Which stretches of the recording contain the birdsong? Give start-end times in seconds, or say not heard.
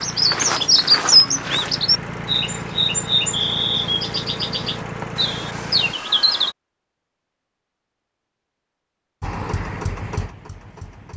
0.0-6.5.